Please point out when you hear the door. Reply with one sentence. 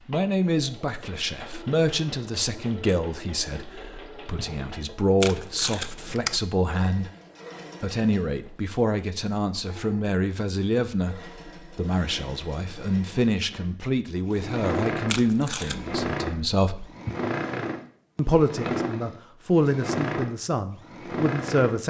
You can't hear the door here.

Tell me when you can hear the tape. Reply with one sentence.
You can hear the tape from 5.2 to 6.4 s and from 15.1 to 15.9 s.